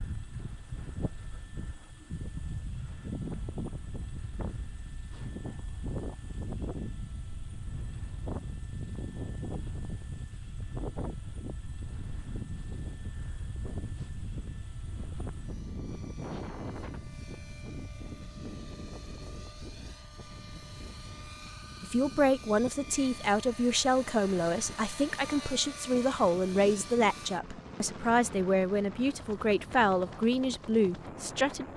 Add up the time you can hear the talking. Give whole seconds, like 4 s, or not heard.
10 s.